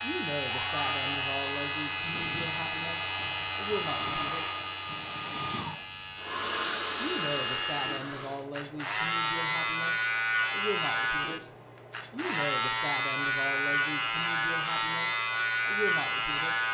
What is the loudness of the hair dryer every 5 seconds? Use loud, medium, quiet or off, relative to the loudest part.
loud, loud, off, off.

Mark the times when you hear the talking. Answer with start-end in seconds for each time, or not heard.
0.0-4.5, 7.0-11.5, 12.1-16.6.